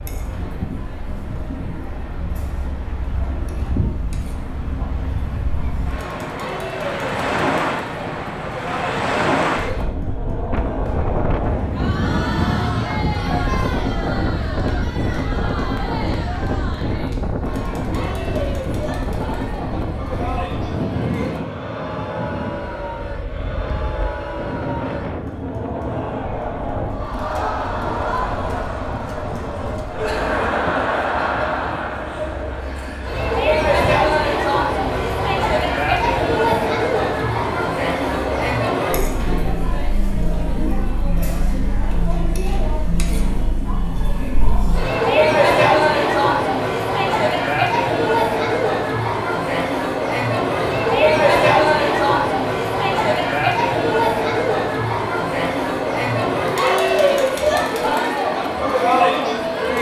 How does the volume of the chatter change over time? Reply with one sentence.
The volume of the chatter goes up.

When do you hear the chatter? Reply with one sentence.
You can hear the chatter from 0.0 to 59.7 s.